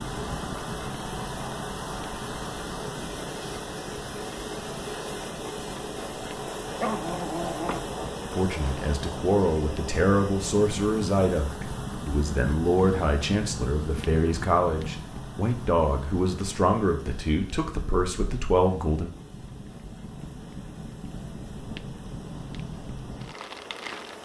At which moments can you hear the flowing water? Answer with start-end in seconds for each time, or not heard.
0.0-24.2.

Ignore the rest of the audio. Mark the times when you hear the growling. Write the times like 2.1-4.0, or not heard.
6.7-8.0.